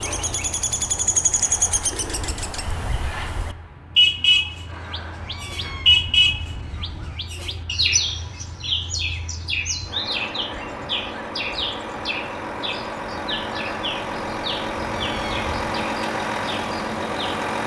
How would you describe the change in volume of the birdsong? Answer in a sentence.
The loudness of the birdsong goes up, then down.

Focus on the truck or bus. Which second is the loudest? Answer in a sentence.
The volume of the truck or bus peaks at 16 seconds.